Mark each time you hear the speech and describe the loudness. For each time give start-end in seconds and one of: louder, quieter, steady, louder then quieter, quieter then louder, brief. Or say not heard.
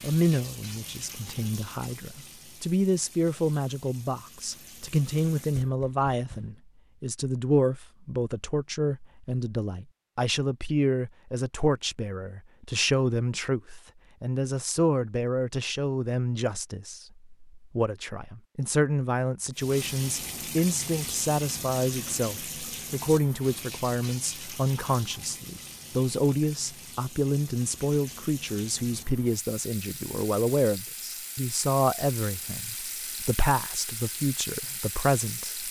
0.0-35.6 steady.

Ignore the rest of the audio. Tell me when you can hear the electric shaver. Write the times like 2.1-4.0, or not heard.
not heard.